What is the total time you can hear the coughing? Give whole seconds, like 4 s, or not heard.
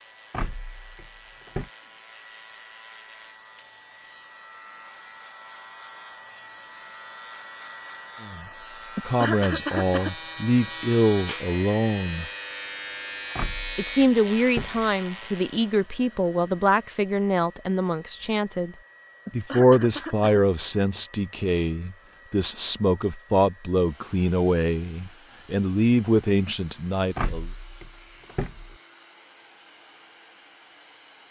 2 s.